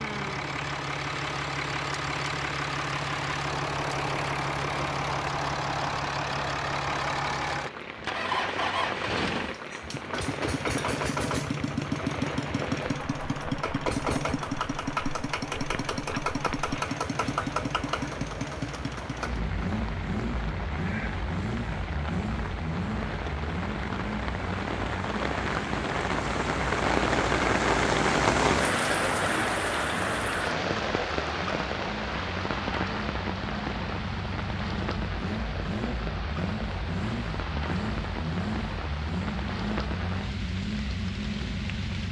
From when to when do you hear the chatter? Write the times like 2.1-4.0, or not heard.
not heard.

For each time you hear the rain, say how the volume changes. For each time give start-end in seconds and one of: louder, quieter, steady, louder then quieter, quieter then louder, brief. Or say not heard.
0.0-42.0 louder then quieter.